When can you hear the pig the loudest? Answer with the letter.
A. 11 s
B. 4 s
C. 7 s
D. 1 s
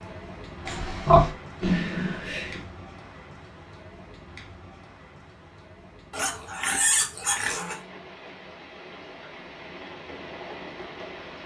D.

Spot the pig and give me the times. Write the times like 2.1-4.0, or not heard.
0.7-2.6, 6.1-7.8.